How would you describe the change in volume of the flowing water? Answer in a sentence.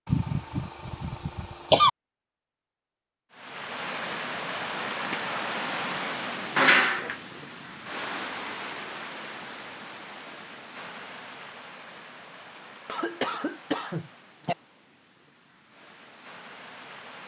The volume of the flowing water goes down.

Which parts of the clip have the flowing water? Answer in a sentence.
You can hear the flowing water from 3.3 to 17.2 s.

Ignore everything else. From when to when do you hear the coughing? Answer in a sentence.
The coughing can be heard from 0.1 to 1.9 s, from 6.5 to 7.2 s and from 12.6 to 14.6 s.